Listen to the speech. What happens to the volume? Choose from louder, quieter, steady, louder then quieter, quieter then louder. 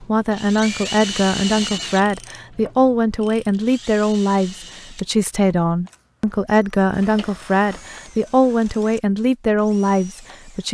steady.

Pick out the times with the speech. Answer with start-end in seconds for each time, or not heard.
0.0-10.7.